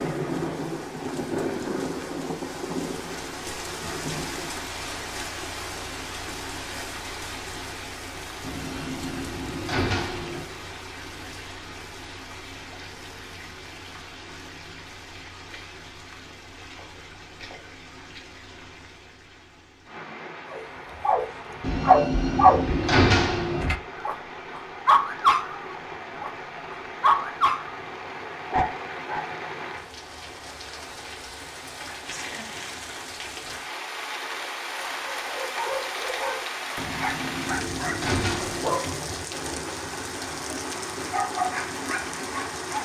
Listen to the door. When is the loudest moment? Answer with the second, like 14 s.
23 s.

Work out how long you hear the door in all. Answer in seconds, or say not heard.
6 s.